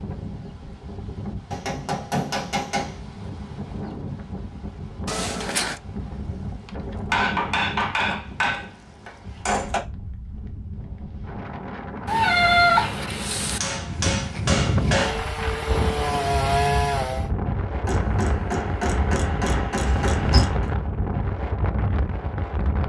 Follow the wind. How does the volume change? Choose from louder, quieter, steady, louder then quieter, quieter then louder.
louder.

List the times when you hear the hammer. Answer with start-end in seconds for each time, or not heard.
1.5-3.0, 7.1-9.8, 13.6-15.2, 17.9-20.7.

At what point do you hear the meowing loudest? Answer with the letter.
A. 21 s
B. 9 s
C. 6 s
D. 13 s
D.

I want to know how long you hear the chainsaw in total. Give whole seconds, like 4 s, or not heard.
2 s.